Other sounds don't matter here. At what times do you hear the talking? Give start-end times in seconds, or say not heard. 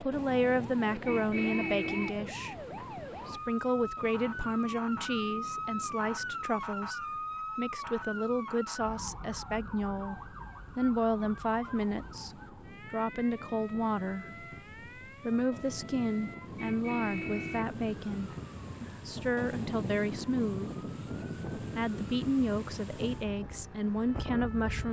0.0-2.5, 3.2-14.4, 15.2-20.7, 21.6-24.8.